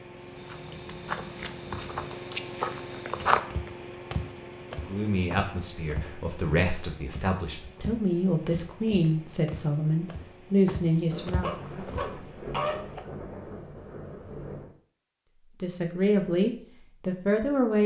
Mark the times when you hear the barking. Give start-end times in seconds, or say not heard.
11.4-13.0.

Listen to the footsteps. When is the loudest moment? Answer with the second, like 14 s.
3 s.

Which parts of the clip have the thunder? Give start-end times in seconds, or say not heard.
11.1-14.7.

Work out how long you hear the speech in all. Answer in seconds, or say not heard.
9 s.